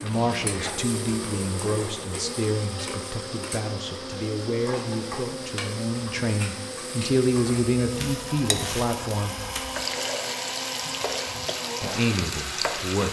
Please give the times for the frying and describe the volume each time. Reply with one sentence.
You can hear the frying from 0.0 to 13.0 s, getting louder.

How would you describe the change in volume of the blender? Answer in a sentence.
The loudness of the blender stays about the same.